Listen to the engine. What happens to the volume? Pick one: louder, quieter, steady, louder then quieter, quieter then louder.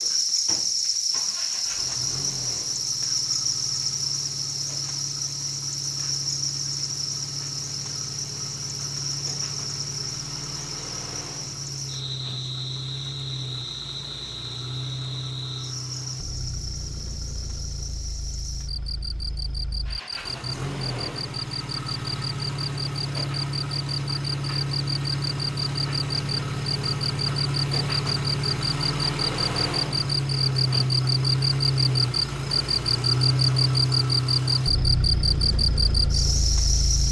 louder.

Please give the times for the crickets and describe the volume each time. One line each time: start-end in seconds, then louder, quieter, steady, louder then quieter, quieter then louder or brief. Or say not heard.
0.0-37.0 quieter then louder.